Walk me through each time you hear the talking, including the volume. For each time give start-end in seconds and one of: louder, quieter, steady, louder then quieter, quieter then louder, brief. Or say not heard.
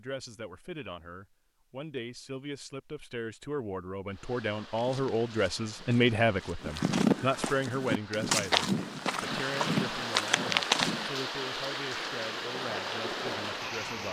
0.0-14.0 louder then quieter.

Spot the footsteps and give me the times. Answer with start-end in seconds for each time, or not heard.
4.7-11.1.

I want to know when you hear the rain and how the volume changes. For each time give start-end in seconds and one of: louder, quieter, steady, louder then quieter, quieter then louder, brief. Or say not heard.
4.0-14.0 louder.